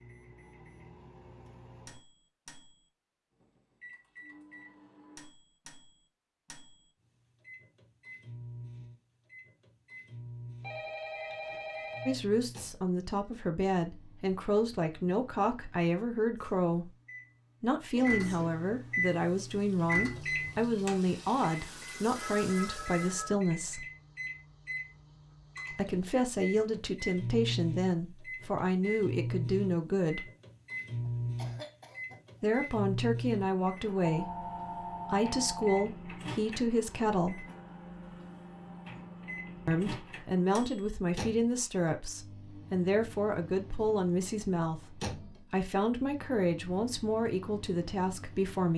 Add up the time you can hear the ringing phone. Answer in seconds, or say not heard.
5 s.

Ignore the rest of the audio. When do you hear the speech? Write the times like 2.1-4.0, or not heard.
12.1-16.9, 17.6-23.9, 25.7-30.3, 32.4-37.5, 39.6-48.7.